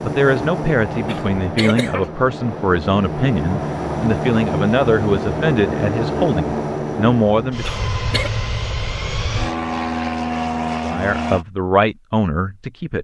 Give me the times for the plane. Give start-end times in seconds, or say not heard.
0.0-11.4.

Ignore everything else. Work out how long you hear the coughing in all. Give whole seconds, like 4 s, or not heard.
2 s.